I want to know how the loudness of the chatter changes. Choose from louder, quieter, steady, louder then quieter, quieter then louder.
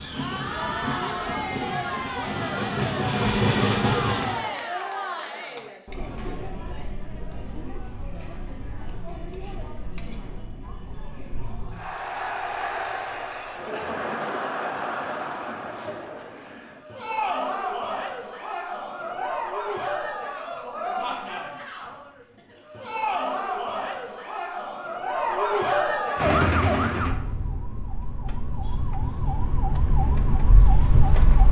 quieter then louder.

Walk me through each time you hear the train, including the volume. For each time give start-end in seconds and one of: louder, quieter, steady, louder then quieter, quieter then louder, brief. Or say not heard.
0.0-4.5 louder.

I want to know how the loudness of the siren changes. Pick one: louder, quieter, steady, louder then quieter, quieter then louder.
quieter then louder.